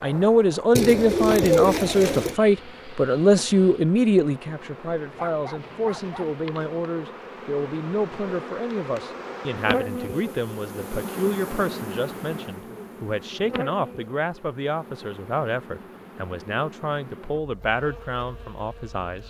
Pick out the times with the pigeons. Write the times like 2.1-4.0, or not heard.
0.8-2.4.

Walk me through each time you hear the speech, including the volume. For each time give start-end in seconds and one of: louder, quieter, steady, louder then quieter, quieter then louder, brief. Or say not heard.
0.0-19.2 quieter.